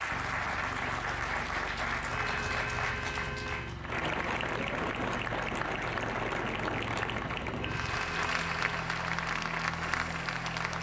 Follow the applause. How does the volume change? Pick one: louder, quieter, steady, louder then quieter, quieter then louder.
steady.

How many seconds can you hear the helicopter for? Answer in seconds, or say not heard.
11 s.